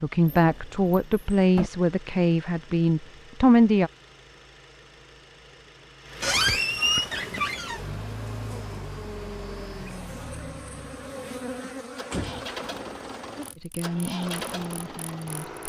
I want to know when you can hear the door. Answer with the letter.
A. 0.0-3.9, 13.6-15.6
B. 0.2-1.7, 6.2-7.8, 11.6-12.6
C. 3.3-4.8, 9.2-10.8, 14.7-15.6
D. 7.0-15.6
B.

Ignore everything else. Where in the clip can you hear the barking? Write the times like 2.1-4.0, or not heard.
not heard.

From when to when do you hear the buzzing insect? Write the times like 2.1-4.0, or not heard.
7.0-15.6.